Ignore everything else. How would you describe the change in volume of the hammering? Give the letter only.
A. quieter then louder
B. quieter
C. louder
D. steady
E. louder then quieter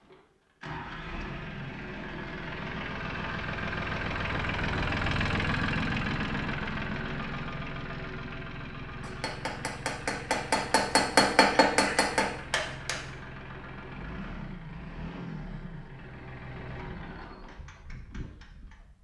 E.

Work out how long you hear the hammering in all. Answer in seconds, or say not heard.
4 s.